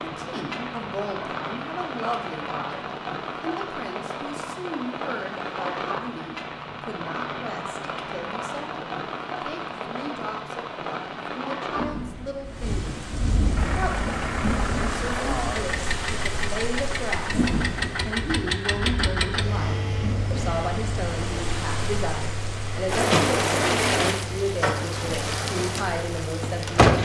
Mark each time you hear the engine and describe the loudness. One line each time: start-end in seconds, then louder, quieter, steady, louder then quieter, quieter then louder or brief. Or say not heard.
13.5-26.9 quieter.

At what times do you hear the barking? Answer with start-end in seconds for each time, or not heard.
not heard.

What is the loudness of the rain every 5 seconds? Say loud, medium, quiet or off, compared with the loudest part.
medium, medium, medium, medium, loud, loud.